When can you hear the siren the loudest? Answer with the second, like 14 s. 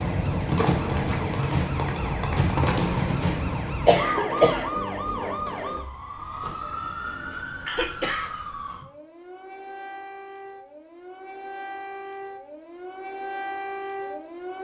3 s.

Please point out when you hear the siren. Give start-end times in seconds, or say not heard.
0.0-14.5.